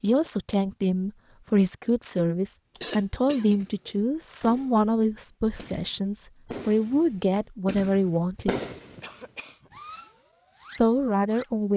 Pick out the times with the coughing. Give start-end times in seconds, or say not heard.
2.8-3.9, 8.7-9.8.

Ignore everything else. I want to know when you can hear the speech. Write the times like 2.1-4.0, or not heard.
0.0-8.6, 10.8-11.7.